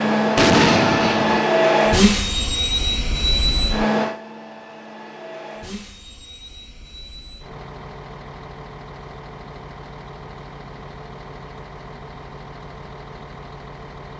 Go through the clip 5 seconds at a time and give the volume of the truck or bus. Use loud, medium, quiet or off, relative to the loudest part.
loud, quiet, quiet.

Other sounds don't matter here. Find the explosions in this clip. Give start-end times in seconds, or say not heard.
0.3-1.4.